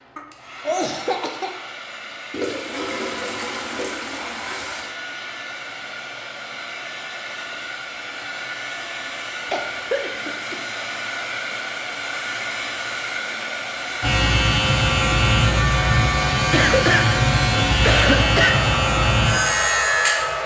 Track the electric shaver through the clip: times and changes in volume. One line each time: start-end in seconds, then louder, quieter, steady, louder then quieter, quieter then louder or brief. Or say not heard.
14.0-20.4 steady.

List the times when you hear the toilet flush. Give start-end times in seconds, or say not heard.
2.3-5.0.